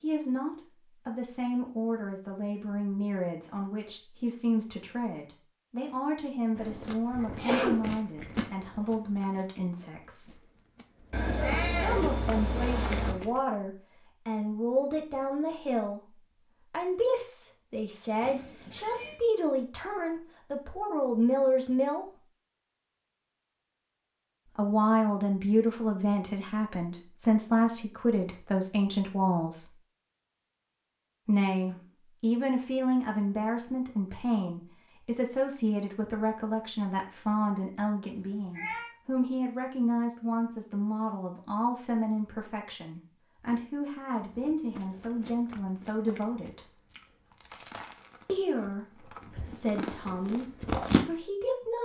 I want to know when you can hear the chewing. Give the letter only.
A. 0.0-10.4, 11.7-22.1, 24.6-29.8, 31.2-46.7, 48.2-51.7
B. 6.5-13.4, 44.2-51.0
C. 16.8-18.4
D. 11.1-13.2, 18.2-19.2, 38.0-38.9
B.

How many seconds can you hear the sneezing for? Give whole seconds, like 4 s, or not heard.
2 s.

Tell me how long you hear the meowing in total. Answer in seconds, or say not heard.
4 s.